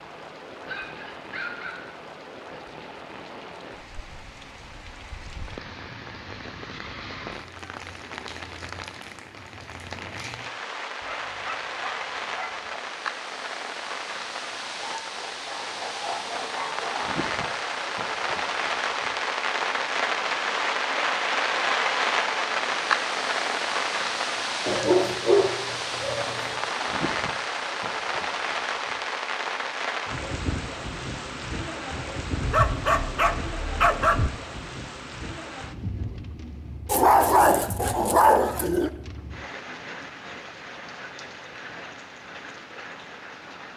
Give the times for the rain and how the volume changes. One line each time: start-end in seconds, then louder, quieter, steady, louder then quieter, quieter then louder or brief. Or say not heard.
0.0-43.7 louder then quieter.